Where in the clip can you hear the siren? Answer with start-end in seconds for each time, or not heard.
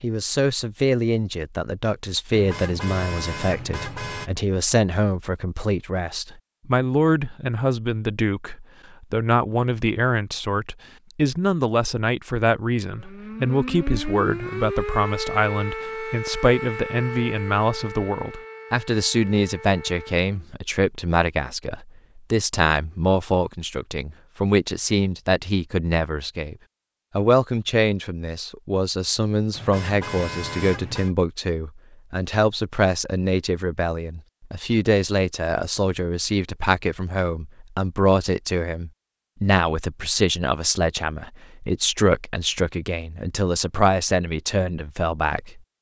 12.9-20.4.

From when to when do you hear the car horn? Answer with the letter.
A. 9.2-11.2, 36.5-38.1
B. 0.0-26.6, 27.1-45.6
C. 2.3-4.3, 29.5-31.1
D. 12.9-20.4
C.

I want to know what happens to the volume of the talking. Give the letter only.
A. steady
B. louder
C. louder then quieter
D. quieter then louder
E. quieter
A.